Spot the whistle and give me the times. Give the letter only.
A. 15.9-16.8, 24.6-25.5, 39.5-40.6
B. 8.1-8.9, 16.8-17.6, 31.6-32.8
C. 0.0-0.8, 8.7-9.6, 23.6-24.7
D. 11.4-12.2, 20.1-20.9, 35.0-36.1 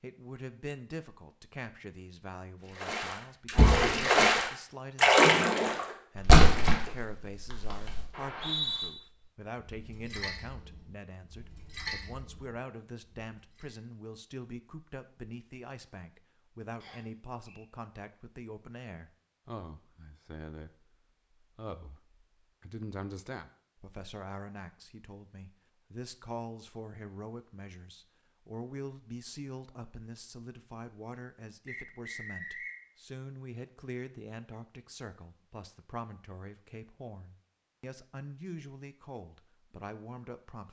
B.